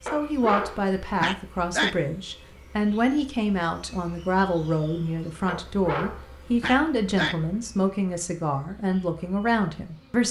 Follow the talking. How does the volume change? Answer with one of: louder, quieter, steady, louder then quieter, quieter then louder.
steady.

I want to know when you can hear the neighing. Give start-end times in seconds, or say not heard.
not heard.